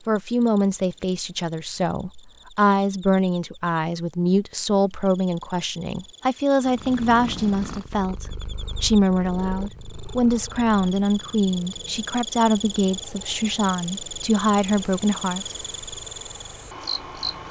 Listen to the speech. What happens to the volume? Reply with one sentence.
The loudness of the speech stays about the same.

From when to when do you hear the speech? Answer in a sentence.
You can hear the speech from 0.1 to 15.5 s.